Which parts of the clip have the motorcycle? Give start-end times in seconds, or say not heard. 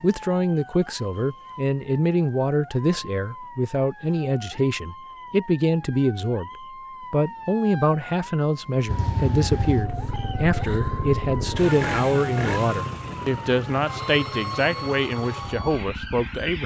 8.8-16.6.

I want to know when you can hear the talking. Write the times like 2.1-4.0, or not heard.
0.0-6.5, 7.1-16.6.